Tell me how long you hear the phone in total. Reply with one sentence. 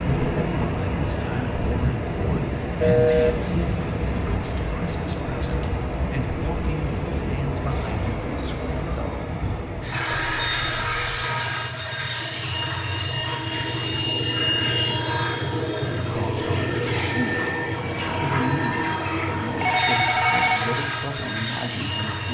You can hear the phone for 3 seconds altogether.